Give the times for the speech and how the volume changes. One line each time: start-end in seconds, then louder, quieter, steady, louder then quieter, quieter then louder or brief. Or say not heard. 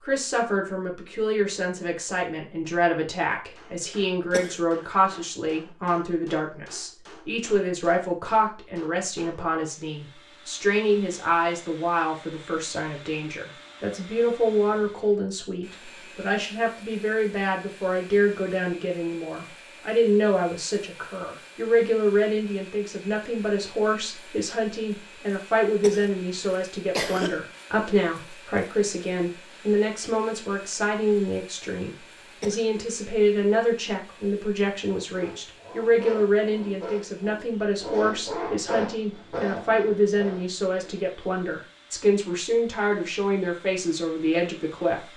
0.1-45.1 steady.